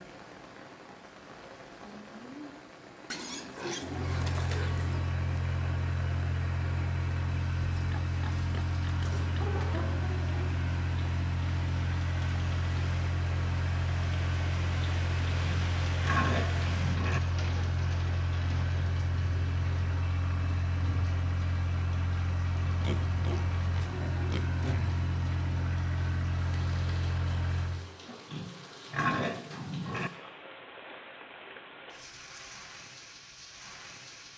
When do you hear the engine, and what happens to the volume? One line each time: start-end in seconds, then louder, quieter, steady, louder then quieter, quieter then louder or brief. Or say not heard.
3.8-27.9 steady.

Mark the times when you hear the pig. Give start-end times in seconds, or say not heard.
3.1-5.1, 7.8-10.0, 15.2-17.2, 22.6-24.9, 28.1-30.1.